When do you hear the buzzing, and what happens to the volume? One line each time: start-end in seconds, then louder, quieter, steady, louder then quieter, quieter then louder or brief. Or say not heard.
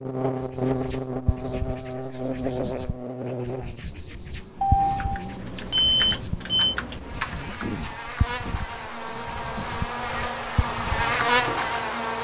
0.0-12.1 quieter then louder.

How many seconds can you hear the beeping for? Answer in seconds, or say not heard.
2 s.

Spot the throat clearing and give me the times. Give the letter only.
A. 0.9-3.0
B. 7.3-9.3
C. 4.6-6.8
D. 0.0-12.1
B.